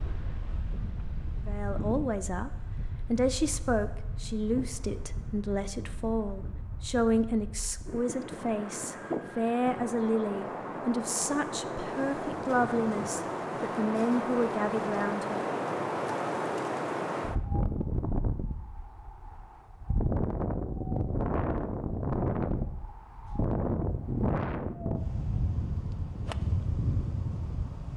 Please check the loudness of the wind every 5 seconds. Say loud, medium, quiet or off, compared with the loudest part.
medium, medium, loud, loud, loud, loud.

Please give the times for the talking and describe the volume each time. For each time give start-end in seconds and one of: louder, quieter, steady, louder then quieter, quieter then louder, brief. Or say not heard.
1.4-15.4 steady.